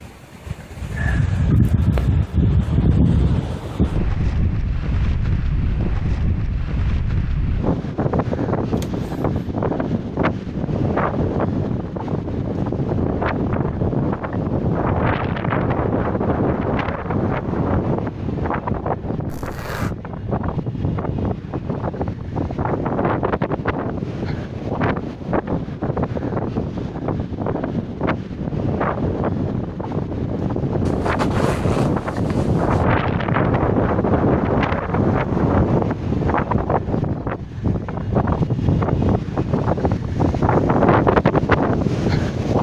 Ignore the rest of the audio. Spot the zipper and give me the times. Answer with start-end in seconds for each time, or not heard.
8.8-9.4, 19.2-19.9, 30.9-32.9.